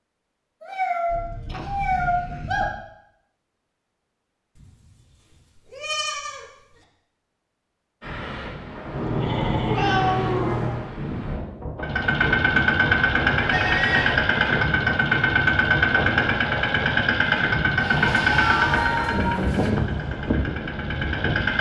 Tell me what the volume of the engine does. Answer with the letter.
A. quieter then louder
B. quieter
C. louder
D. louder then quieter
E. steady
B.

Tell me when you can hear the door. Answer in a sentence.
You can't hear the door here.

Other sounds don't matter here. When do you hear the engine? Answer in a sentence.
The engine can be heard from 11.8 to 21.5 s.